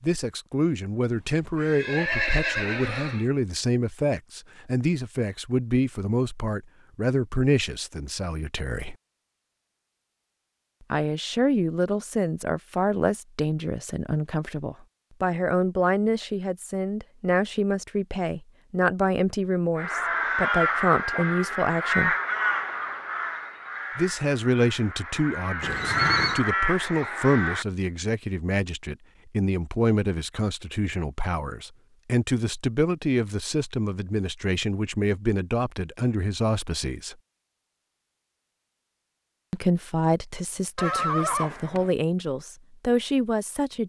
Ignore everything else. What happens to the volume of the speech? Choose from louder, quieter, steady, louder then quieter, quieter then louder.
steady.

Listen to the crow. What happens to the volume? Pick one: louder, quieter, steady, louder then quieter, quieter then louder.
quieter then louder.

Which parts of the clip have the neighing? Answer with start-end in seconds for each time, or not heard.
1.6-3.2, 25.6-26.4, 40.8-41.9.